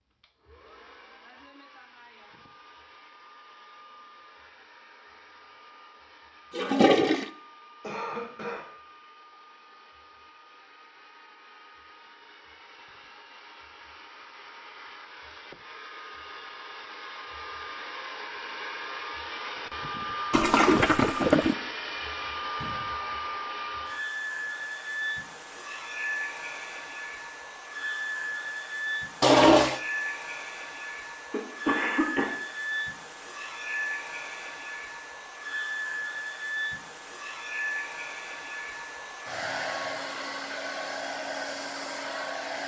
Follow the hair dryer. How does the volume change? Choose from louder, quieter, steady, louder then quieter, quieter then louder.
louder.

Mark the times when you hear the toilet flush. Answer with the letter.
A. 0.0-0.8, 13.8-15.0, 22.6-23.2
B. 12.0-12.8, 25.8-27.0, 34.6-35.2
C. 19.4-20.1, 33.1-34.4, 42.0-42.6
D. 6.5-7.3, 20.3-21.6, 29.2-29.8
D.